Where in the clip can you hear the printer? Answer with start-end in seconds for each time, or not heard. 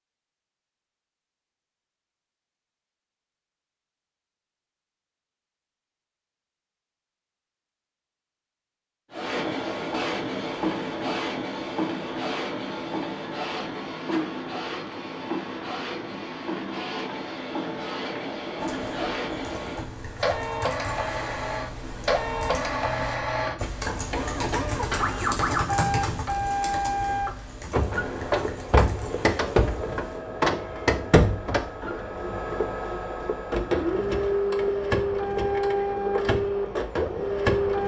9.1-37.8.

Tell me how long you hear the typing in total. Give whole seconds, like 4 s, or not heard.
12 s.